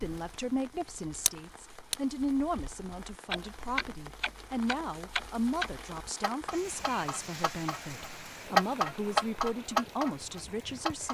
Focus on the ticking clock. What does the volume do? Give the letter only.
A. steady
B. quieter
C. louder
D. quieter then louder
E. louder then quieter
C.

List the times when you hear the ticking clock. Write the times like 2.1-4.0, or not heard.
0.0-11.0.